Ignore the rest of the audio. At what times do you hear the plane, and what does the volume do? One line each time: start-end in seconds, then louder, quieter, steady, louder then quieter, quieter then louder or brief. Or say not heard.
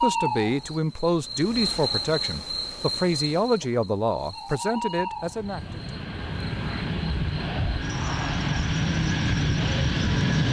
5.2-10.4 louder.